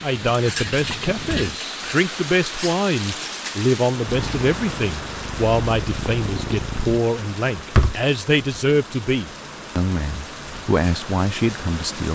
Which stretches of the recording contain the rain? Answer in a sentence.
The rain can be heard from 0.0 to 12.0 s.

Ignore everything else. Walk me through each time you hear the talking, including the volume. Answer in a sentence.
The talking can be heard from 0.0 to 12.0 s, at a steady volume.